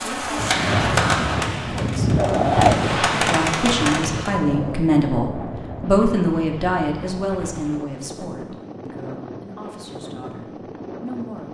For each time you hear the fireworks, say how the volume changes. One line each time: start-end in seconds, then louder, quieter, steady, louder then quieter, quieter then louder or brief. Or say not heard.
0.0-4.3 quieter then louder.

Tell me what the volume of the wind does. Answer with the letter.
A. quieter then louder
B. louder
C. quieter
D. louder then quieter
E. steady
C.